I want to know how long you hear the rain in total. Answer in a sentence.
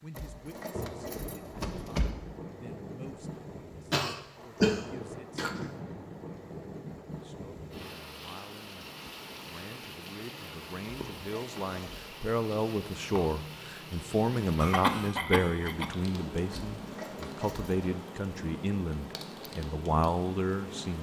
The rain can be heard for 21 seconds in total.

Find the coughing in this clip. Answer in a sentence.
You can hear the coughing from 3.9 to 5.7 s and from 14.6 to 15.9 s.